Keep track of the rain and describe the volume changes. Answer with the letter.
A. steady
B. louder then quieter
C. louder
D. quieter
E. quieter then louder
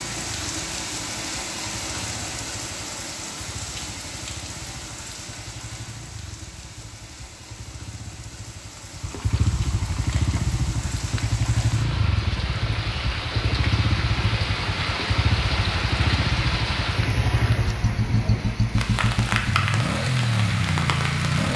E.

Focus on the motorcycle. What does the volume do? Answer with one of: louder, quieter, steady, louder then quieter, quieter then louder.
louder.